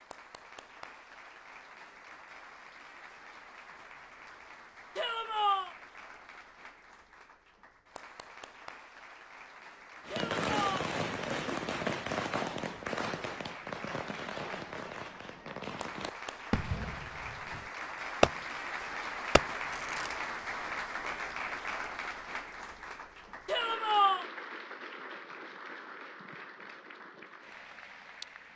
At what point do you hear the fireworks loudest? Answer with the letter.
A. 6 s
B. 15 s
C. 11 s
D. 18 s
D.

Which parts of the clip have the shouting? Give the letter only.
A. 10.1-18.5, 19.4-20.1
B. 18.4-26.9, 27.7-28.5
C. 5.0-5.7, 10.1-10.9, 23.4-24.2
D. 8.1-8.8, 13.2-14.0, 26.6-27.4
C.